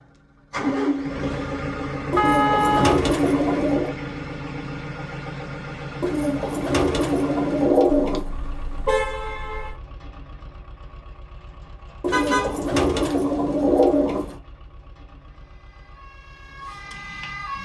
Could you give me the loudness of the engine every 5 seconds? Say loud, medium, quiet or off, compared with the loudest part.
loud, medium, quiet, quiet.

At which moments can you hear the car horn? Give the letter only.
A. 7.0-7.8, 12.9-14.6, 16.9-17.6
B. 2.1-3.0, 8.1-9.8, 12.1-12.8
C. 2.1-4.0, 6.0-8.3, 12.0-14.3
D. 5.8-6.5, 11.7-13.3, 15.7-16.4
B.